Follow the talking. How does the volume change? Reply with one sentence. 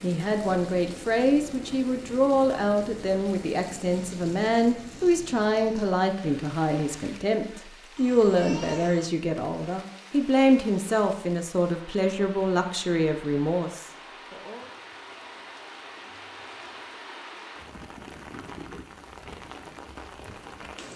The volume of the talking stays about the same.